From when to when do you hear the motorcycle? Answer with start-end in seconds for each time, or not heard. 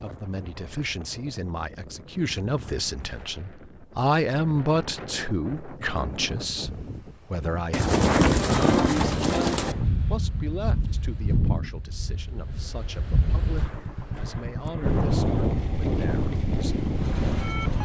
13.4-17.7.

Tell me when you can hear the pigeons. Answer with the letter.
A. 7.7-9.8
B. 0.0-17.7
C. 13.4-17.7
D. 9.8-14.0
A.